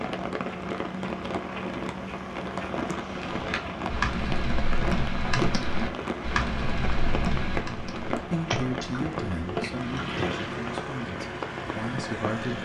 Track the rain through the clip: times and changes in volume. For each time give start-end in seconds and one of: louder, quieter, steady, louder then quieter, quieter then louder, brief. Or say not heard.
0.0-12.5 steady.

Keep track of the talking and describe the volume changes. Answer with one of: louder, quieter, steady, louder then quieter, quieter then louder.
quieter then louder.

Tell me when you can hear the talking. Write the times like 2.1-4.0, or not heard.
8.2-12.5.